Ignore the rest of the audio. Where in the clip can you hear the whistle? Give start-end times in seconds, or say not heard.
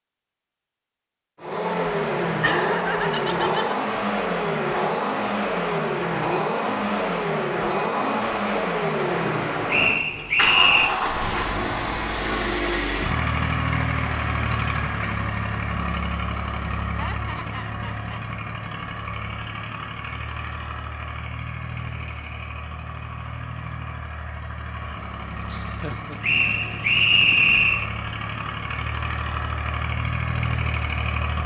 9.7-10.9, 26.2-27.9.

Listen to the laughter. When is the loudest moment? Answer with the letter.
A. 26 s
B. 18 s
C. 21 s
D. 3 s
D.